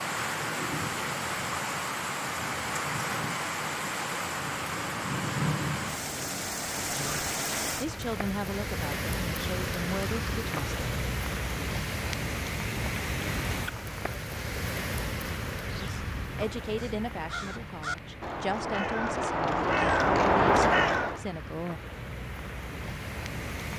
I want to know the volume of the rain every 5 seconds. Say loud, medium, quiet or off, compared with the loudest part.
loud, loud, loud, medium, medium.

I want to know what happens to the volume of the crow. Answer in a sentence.
The volume of the crow goes up.